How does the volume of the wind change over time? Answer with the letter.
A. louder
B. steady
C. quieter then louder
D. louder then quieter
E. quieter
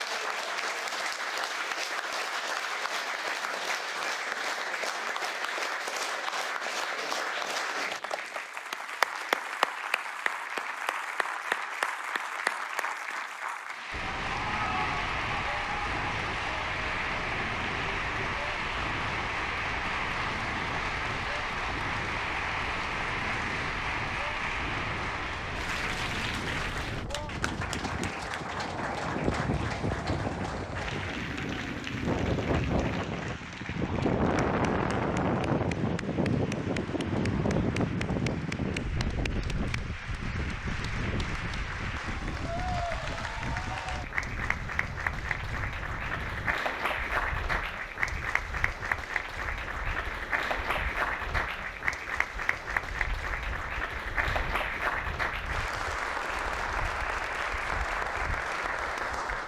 D.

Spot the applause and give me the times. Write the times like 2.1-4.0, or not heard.
0.0-59.4.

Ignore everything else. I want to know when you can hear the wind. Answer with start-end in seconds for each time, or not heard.
13.9-59.4.